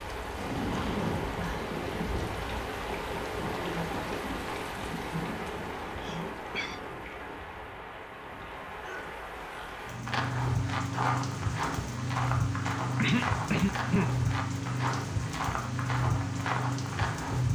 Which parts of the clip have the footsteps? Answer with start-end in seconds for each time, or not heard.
10.1-17.4.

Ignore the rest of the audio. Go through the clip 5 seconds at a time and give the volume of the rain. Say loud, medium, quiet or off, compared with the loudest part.
loud, medium, loud, loud.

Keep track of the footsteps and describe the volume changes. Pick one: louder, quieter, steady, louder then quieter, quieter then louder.
steady.